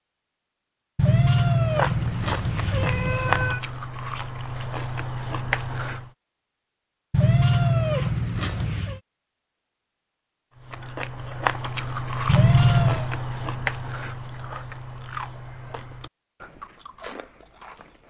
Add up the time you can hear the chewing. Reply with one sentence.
The chewing can be heard for 12 seconds in total.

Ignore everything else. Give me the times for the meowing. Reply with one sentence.
You can hear the meowing from 0.9 to 3.6 s, from 7.1 to 9.0 s and from 12.2 to 13.1 s.